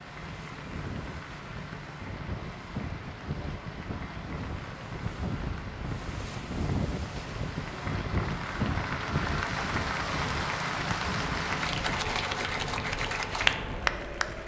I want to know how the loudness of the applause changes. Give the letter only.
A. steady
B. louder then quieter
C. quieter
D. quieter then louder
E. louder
E.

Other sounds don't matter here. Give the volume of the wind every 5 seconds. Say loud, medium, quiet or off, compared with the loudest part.
medium, loud, medium.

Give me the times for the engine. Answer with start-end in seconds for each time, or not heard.
0.0-14.4.